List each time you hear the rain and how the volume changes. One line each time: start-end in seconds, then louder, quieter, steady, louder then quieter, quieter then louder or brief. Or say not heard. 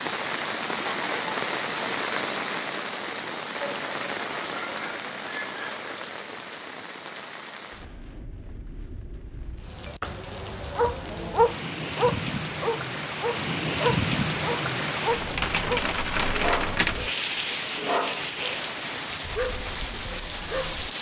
0.0-20.9 quieter then louder.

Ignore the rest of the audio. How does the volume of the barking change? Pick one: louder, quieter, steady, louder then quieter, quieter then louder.
quieter.